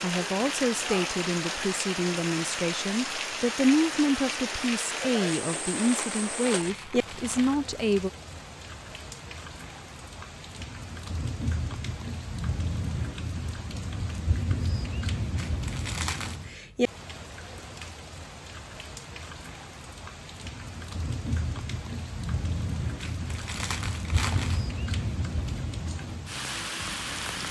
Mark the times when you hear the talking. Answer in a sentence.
You can hear the talking from 0.0 to 8.1 s.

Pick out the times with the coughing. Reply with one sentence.
You can't hear the coughing here.